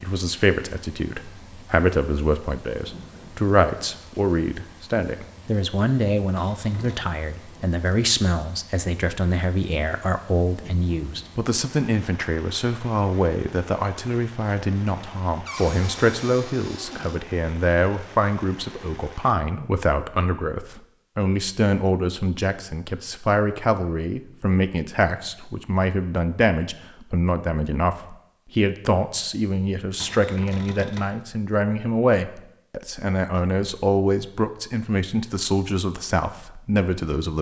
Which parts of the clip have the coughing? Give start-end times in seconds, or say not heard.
not heard.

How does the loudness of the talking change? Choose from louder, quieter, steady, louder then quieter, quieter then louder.
steady.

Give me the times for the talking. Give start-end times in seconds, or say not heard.
0.0-37.3.